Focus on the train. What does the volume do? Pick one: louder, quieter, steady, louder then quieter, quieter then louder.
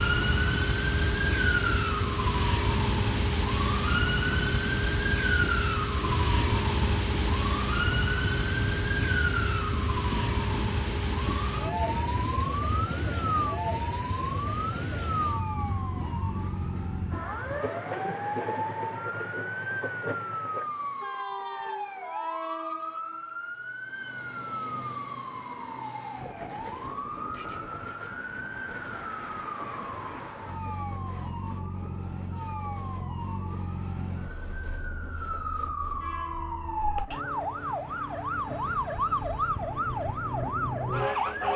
quieter.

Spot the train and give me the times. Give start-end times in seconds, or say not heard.
0.0-41.5.